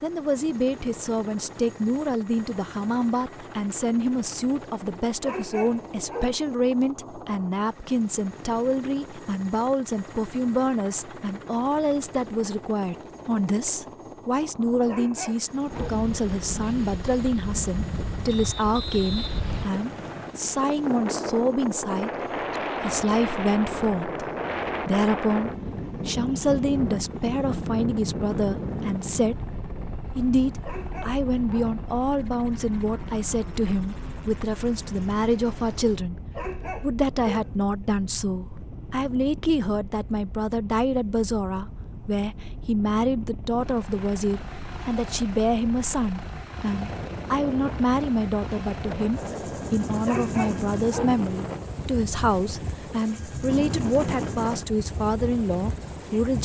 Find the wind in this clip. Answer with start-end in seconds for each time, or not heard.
15.7-56.4.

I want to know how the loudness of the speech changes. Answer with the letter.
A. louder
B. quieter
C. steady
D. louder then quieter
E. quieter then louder
C.